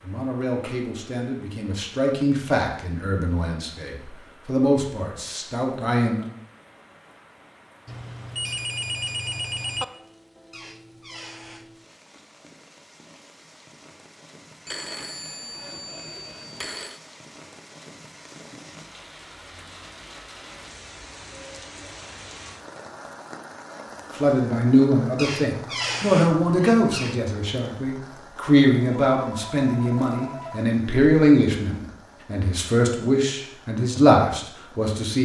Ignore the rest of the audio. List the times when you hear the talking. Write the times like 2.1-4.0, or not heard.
0.0-6.2, 24.1-35.2.